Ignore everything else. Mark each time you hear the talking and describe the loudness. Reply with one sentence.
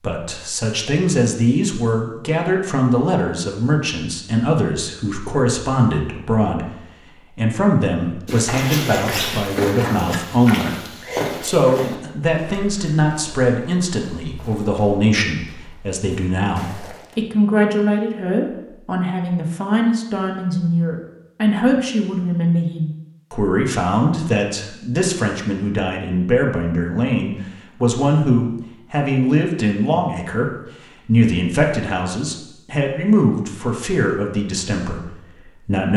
You can hear the talking from 0.0 to 35.9 s, at a steady volume.